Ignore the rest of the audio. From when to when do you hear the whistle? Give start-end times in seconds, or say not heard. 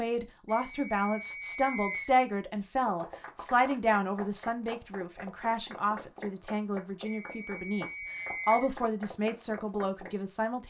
0.5-2.1, 7.0-8.7.